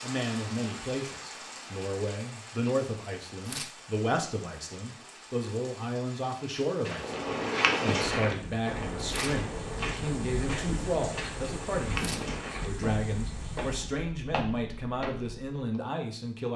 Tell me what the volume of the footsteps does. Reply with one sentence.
The volume of the footsteps goes down.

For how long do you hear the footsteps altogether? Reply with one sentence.
The footsteps can be heard for 9 seconds in total.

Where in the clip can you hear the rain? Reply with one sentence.
The rain can be heard from 0.0 to 13.9 s.